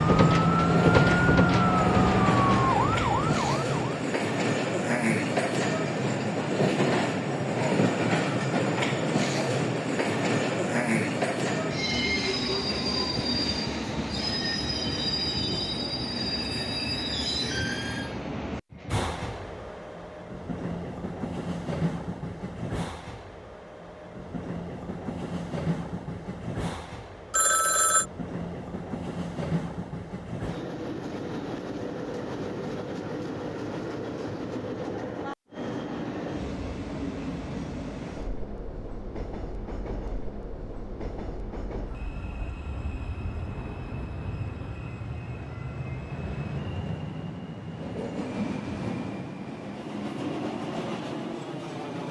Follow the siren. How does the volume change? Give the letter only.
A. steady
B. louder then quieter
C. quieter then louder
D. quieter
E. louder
D.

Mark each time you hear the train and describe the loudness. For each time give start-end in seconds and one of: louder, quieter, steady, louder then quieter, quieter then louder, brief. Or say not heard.
0.0-52.0 quieter.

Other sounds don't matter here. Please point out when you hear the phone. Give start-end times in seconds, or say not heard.
27.3-28.1.